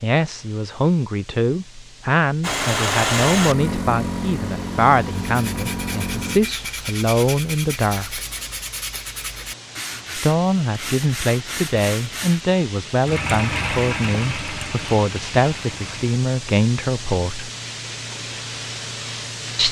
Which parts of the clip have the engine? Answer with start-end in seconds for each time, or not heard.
2.4-6.4, 12.9-16.2.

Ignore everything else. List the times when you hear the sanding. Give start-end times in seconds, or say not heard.
5.2-12.4.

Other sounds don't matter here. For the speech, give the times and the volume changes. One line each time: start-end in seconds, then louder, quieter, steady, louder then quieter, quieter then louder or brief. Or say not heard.
0.0-8.2 steady
10.2-17.5 steady.